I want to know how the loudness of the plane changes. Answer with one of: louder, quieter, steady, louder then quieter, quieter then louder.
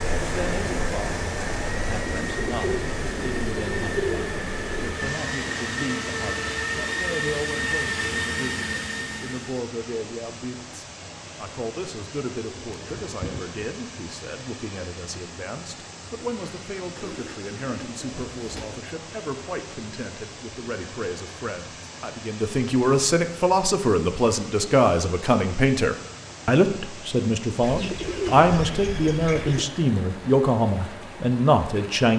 louder.